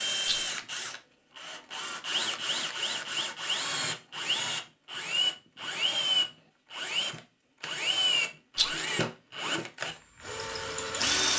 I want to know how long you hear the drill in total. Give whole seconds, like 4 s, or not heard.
11 s.